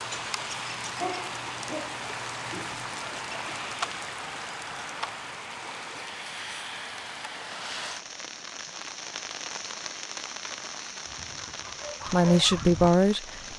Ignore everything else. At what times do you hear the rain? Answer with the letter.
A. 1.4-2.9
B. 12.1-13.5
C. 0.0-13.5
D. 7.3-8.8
C.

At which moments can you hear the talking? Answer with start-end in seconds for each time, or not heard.
12.1-13.5.